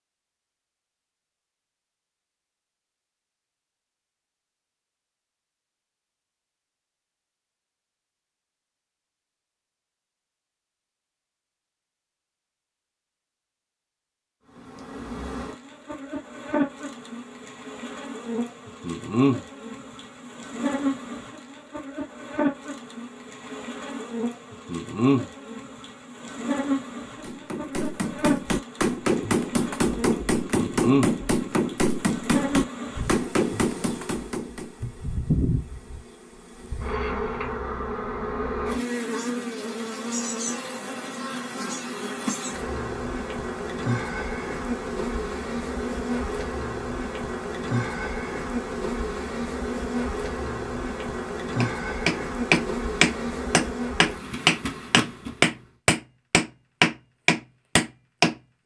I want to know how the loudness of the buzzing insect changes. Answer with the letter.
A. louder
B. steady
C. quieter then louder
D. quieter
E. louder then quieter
B.